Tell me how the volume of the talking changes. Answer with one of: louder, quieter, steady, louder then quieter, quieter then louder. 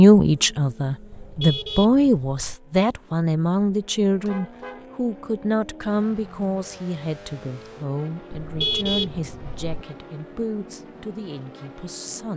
quieter.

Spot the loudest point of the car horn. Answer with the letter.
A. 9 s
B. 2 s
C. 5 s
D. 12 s
A.